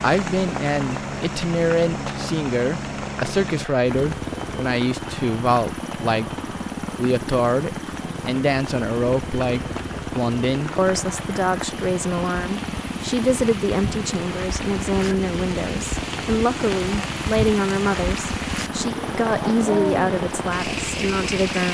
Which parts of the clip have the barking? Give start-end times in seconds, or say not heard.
not heard.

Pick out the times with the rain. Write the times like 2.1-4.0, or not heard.
0.0-21.6.